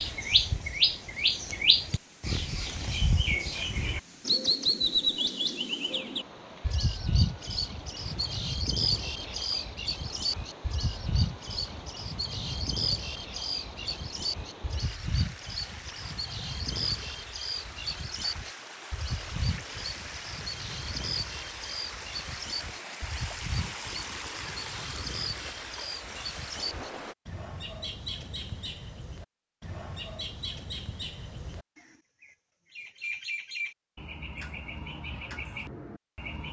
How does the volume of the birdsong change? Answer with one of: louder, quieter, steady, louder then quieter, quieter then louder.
quieter.